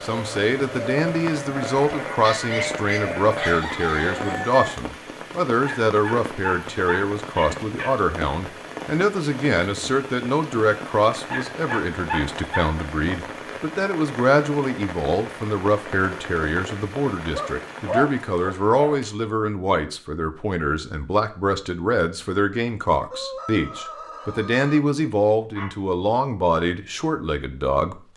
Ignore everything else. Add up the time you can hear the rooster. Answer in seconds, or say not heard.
3 s.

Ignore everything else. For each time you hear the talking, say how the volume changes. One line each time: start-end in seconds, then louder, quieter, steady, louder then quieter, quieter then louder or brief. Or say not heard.
0.0-28.0 steady.